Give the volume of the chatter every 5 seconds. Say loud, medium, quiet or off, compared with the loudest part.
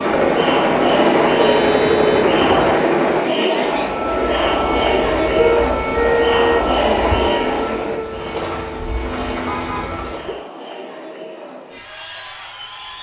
loud, loud, quiet.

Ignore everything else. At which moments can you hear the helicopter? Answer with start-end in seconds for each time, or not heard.
0.0-3.4, 8.0-10.4.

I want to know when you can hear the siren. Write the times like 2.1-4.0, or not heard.
3.8-10.3.